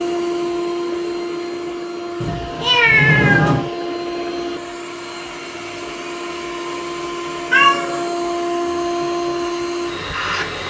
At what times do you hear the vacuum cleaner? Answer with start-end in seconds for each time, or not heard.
0.0-10.6.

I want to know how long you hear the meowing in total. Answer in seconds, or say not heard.
2 s.